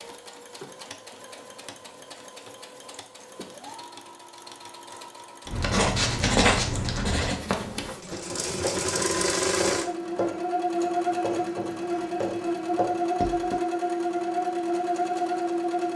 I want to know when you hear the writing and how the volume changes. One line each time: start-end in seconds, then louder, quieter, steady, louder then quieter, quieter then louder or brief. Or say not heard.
5.5-13.6 quieter.